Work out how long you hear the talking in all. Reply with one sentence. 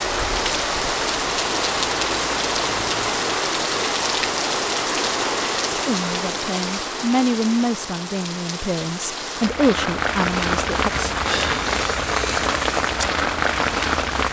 The talking can be heard for 5 seconds in total.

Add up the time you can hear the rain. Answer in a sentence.
You can hear the rain for 14 seconds altogether.